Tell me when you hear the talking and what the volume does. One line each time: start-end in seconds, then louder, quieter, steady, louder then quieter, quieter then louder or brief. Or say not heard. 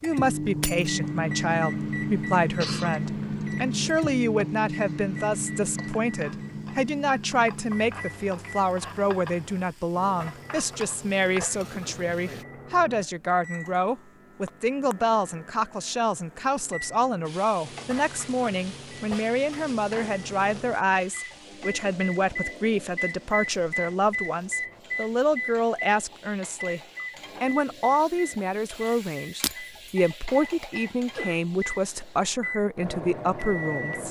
0.0-26.8 steady
27.4-34.0 steady.